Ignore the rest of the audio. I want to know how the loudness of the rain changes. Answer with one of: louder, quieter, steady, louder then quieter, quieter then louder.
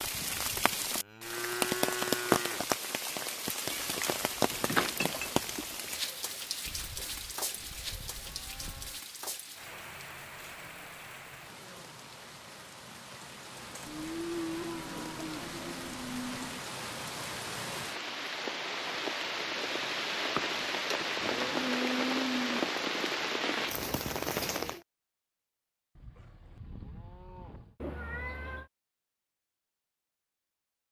quieter then louder.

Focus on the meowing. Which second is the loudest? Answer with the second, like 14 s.
5 s.